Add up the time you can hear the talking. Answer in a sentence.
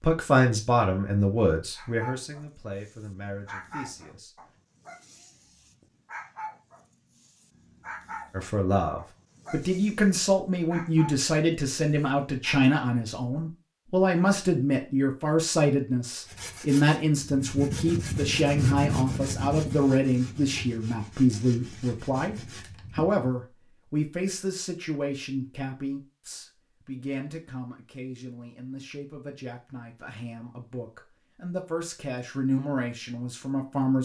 You can hear the talking for 30 seconds altogether.